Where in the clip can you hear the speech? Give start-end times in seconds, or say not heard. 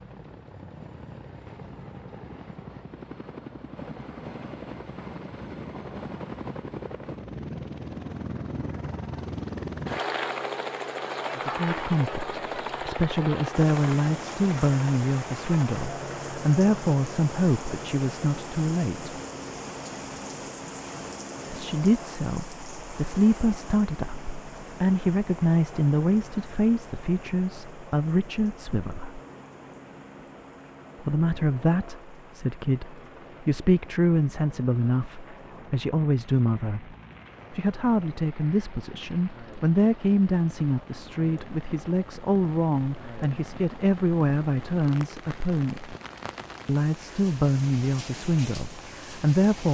11.3-19.1, 21.5-29.2, 31.0-46.0, 46.6-49.7.